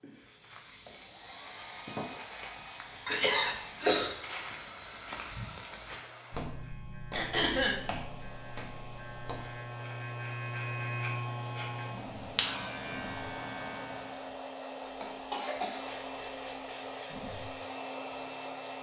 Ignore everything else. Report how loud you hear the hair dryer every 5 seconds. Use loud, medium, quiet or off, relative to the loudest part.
medium, medium, loud, loud.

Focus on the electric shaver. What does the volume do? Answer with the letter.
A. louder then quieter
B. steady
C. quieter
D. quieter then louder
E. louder
E.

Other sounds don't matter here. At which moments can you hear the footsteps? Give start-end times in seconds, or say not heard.
0.1-9.8.